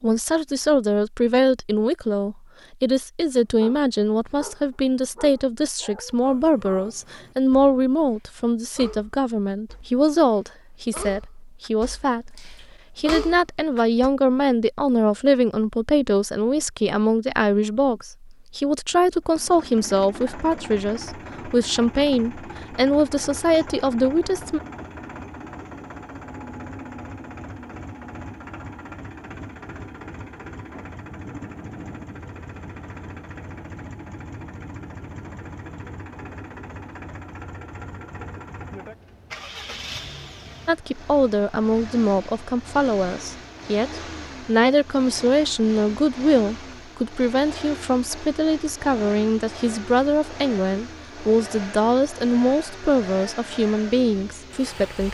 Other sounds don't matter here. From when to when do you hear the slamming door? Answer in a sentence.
You can't hear the slamming door here.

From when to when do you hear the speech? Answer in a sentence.
You can hear the speech from 0.0 to 24.6 s and from 40.6 to 55.1 s.